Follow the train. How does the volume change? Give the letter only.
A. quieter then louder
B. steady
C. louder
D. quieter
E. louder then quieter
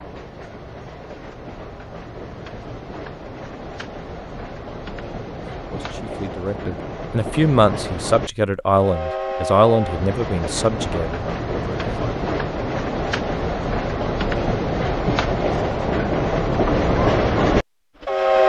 C.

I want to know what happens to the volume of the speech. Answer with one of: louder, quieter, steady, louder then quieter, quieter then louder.
louder then quieter.